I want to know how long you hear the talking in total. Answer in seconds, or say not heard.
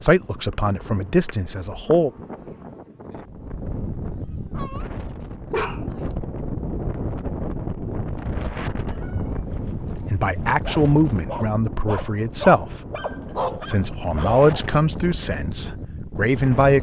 8 s.